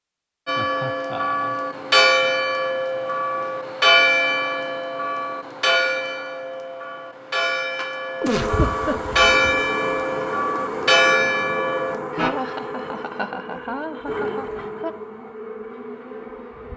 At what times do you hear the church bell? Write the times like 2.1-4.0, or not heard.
0.5-12.3.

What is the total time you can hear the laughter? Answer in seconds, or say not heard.
5 s.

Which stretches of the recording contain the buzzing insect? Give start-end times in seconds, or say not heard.
8.3-16.7.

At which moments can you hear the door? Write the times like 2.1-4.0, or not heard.
not heard.